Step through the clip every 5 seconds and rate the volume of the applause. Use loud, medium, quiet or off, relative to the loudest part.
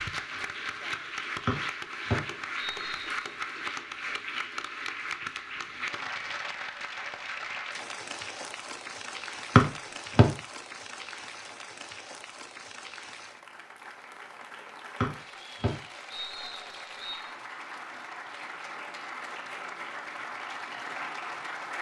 loud, loud, medium, medium, loud.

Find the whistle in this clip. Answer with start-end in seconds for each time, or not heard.
1.4-3.0, 9.6-10.2, 15.0-17.3.